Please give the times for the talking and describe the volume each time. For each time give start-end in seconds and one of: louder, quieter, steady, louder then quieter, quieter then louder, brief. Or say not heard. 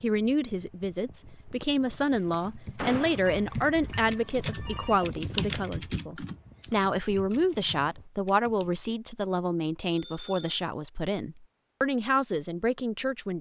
0.0-13.3 steady.